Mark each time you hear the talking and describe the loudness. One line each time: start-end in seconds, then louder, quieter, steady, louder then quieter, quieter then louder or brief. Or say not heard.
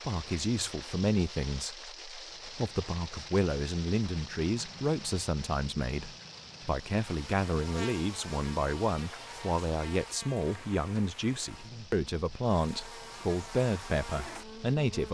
0.1-15.1 steady.